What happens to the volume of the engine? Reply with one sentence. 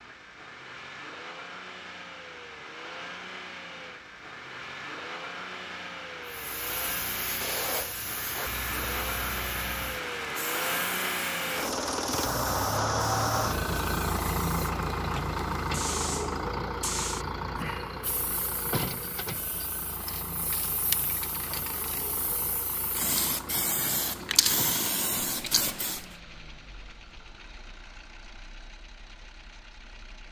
The loudness of the engine goes up, then down.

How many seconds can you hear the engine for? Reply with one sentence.
The engine can be heard for 30 seconds in total.